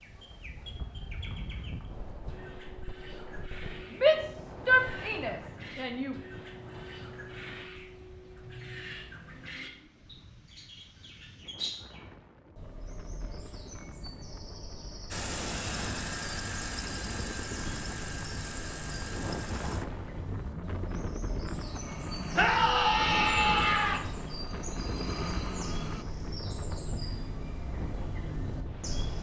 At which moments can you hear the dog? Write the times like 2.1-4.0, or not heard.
not heard.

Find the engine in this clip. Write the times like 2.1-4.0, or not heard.
15.1-26.1.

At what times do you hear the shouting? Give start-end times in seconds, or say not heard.
3.9-6.2, 22.4-24.0.